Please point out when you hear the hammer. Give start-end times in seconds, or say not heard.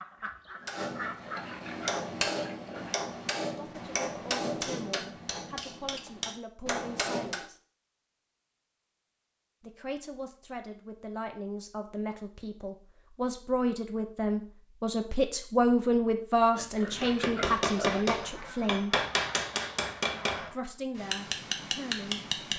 0.7-7.5, 17.0-22.5.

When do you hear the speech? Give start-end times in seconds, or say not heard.
3.4-7.5, 9.6-18.9, 20.4-22.2.